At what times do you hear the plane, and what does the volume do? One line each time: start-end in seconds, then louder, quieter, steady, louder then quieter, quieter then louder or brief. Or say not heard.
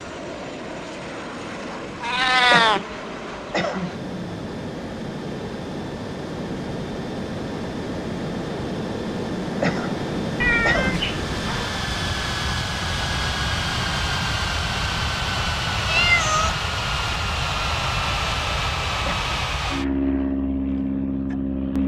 0.0-21.8 louder.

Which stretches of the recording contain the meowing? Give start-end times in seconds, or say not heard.
2.0-2.8, 10.4-11.7, 15.8-16.6.